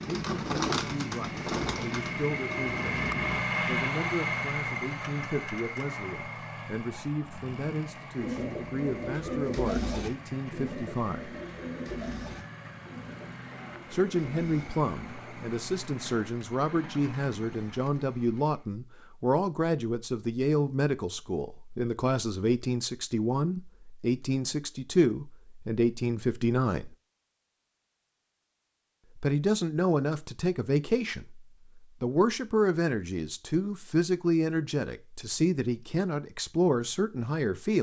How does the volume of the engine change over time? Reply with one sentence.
The loudness of the engine goes down.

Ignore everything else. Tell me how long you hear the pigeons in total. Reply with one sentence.
You can hear the pigeons for 11 seconds altogether.